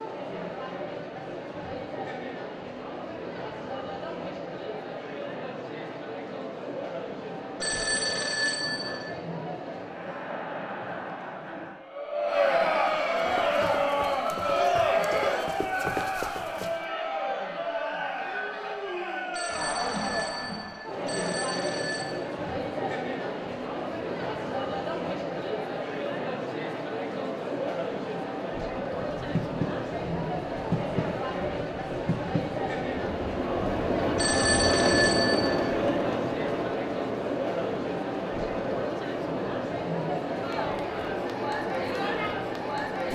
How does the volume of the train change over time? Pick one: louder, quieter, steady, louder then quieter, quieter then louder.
louder then quieter.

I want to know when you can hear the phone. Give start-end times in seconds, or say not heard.
7.6-9.1, 19.3-22.1, 34.1-35.6.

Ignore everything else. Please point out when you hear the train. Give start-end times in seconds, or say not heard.
29.0-43.1.